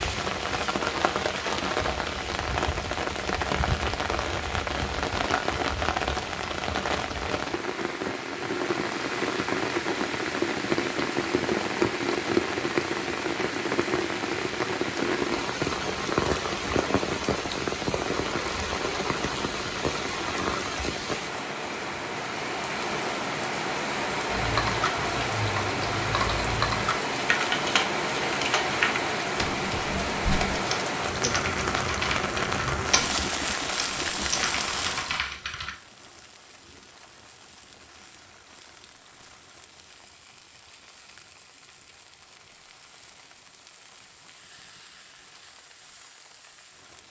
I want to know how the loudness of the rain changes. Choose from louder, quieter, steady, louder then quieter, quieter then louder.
quieter.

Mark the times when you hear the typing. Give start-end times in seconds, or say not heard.
24.3-35.8.